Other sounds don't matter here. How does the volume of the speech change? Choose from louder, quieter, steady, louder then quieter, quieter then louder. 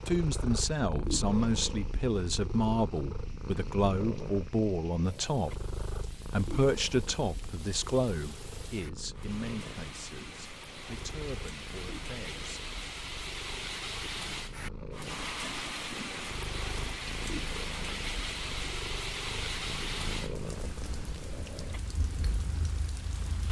quieter.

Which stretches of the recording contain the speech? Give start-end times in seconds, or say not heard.
0.1-12.7.